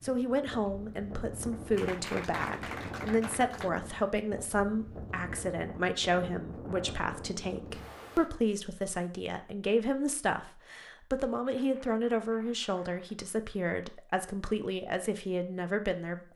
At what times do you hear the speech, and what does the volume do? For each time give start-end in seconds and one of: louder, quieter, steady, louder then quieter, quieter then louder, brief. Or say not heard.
0.0-16.3 steady.